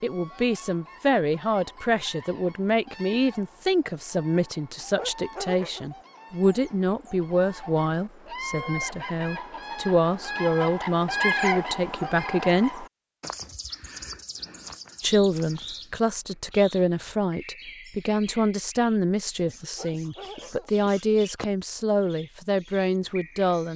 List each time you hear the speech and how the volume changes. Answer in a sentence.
The speech can be heard from 0.0 to 12.8 s, at a steady volume; and from 15.0 to 23.7 s, at a steady volume.